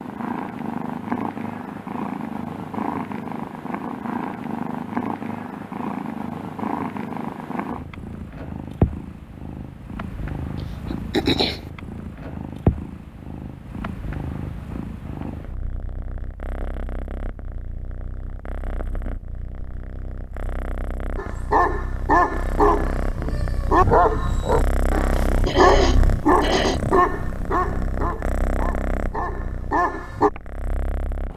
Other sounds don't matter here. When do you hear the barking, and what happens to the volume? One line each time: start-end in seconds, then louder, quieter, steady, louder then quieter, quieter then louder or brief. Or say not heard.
21.1-30.3 quieter.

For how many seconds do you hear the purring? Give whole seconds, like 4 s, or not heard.
31 s.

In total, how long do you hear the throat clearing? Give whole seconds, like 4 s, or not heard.
2 s.